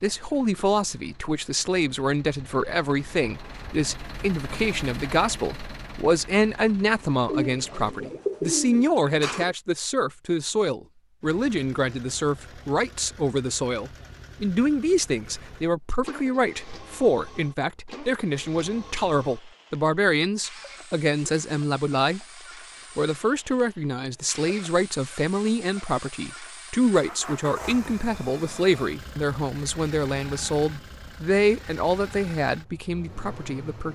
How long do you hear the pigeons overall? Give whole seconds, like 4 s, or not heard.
2 s.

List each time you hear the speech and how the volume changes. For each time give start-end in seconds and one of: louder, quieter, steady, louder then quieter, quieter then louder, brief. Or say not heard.
0.0-22.2 steady
22.9-33.9 steady.